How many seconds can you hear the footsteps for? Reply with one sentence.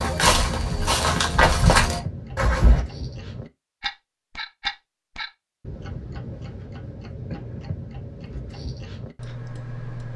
You can hear the footsteps for 3 seconds altogether.